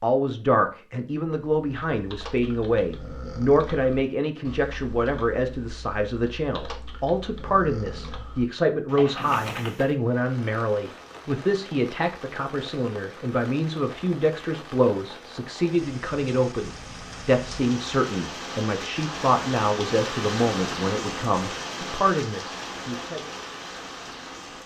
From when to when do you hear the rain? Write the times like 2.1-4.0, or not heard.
9.9-24.6.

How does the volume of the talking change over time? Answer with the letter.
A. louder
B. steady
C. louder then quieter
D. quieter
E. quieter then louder
B.